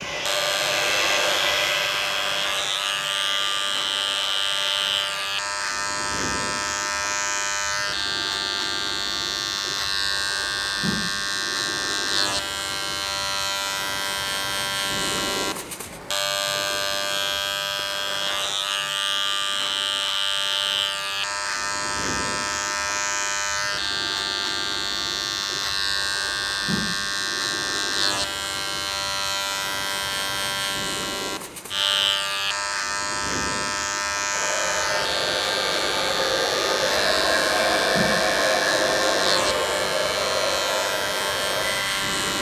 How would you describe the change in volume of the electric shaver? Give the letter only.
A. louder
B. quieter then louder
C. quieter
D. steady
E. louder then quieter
D.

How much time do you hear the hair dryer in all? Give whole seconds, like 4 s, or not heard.
13 s.